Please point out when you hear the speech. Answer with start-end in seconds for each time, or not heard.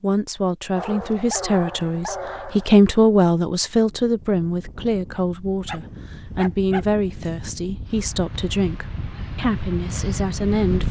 0.0-10.8.